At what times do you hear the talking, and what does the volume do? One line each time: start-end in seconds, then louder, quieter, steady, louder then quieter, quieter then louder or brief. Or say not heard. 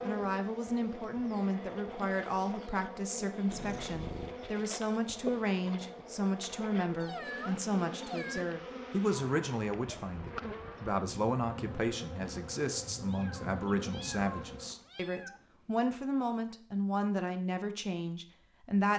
0.0-18.9 steady.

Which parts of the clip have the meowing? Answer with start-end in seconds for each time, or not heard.
3.5-4.3, 7.0-8.4, 13.1-15.8.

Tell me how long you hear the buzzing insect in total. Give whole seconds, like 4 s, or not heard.
15 s.